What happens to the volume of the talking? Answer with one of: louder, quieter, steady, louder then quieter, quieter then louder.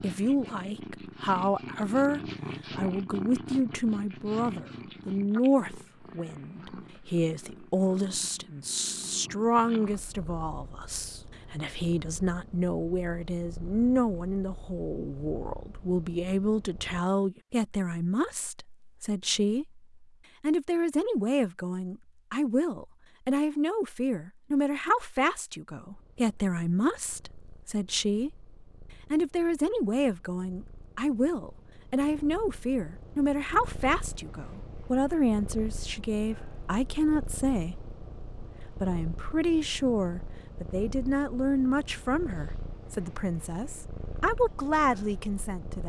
steady.